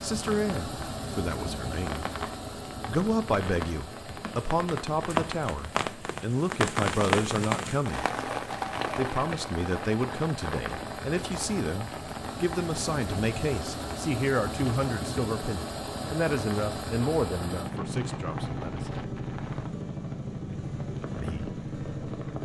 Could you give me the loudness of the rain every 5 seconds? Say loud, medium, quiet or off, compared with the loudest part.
medium, loud, medium, quiet, quiet.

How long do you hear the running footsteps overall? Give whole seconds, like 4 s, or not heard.
not heard.